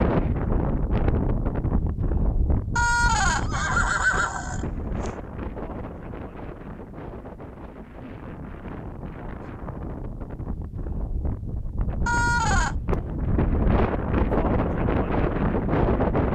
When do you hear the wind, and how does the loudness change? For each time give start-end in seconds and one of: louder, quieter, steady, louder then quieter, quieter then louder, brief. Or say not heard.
0.0-16.3 quieter then louder.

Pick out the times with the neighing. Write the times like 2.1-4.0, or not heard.
2.8-5.1, 12.1-12.8.